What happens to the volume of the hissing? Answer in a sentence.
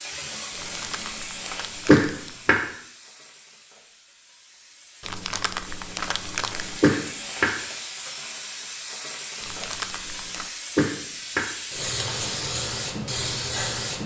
The volume of the hissing goes down, then up.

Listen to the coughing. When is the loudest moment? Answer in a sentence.
The loudest moment of the coughing is at 2 seconds.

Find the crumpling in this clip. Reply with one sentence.
You can hear the crumpling from 0.5 to 2.5 s, from 5.0 to 6.8 s and from 9.4 to 10.5 s.